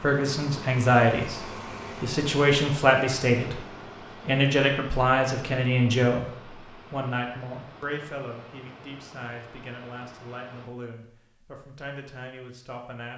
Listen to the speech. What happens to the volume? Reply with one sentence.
The volume of the speech goes down.